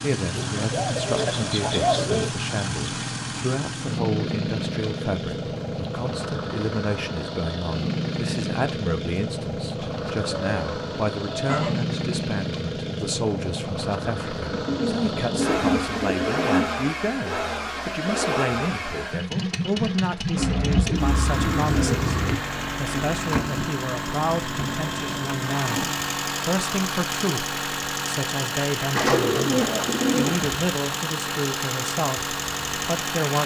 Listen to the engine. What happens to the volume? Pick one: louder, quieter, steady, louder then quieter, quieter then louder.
steady.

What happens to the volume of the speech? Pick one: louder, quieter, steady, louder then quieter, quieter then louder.
steady.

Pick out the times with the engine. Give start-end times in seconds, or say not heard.
0.0-33.4.